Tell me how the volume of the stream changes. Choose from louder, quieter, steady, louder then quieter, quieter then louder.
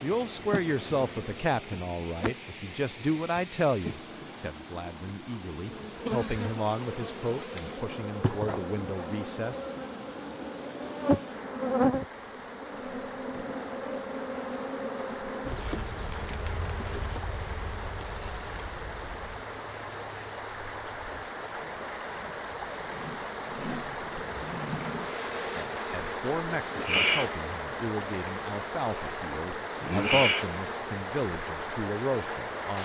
louder.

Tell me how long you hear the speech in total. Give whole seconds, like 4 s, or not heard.
17 s.